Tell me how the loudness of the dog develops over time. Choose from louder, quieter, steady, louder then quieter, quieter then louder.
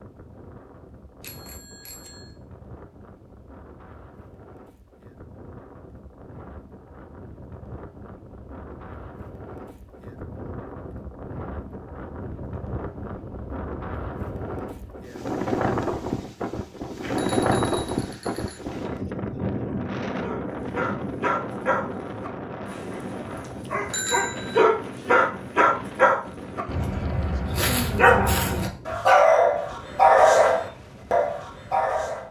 louder.